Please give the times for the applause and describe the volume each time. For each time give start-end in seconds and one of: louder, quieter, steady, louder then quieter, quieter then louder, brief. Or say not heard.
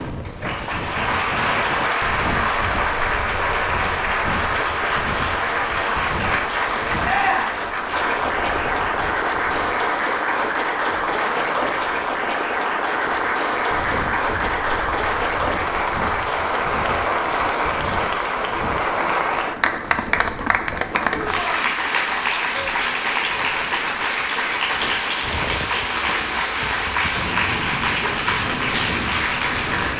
0.0-29.9 steady.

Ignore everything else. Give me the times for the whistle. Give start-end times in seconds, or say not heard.
not heard.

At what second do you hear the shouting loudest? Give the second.
7 s.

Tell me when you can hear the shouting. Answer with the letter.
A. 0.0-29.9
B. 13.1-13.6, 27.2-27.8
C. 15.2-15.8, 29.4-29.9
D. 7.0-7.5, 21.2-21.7
D.